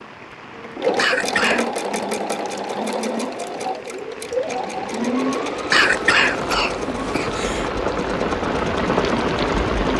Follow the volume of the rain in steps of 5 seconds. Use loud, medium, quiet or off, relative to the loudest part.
quiet, loud.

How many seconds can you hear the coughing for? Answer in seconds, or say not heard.
3 s.